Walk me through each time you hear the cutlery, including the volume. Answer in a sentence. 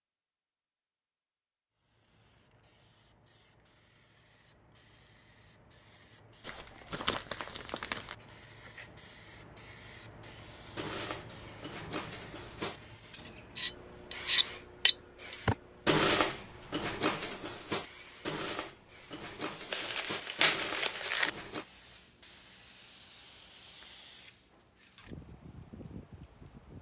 The cutlery can be heard from 10.8 to 21.6 s, getting louder then quieter.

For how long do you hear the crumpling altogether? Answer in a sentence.
The crumpling can be heard for 3 seconds in total.